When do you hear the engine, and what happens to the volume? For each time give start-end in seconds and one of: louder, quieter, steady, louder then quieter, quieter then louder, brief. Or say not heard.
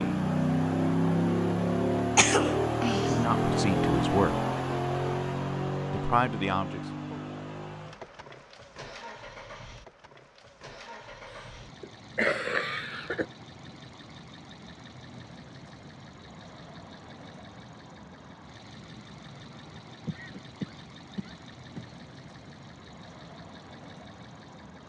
0.0-24.8 quieter.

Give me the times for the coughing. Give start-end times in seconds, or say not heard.
2.1-3.1, 11.8-13.2, 20.1-21.9.